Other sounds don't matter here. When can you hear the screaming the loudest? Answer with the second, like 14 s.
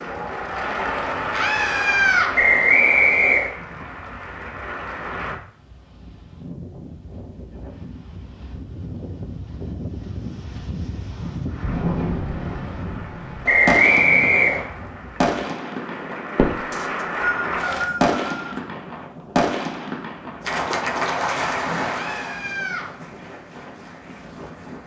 2 s.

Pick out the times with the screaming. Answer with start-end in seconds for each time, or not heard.
1.3-2.3, 21.9-22.9.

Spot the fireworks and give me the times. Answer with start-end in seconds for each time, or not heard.
11.6-16.8, 18.0-22.4.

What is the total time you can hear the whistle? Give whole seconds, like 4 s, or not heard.
4 s.